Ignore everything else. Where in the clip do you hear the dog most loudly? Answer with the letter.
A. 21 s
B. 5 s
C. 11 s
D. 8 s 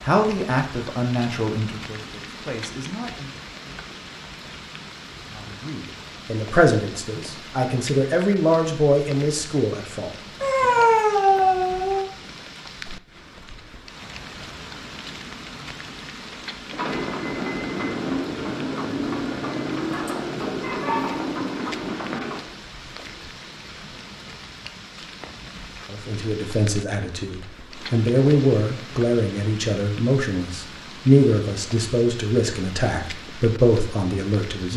C.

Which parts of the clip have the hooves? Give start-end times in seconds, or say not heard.
16.6-22.6.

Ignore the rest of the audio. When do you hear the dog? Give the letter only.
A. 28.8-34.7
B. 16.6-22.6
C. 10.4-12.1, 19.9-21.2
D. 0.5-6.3
C.